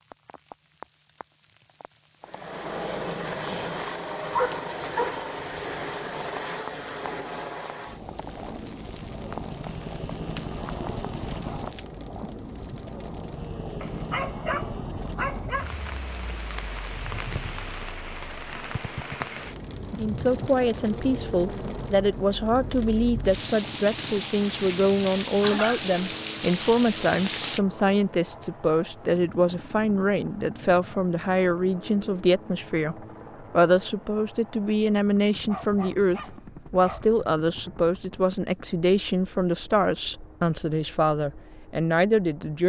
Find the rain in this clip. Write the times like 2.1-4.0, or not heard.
0.0-27.6.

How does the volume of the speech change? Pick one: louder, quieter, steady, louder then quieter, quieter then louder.
steady.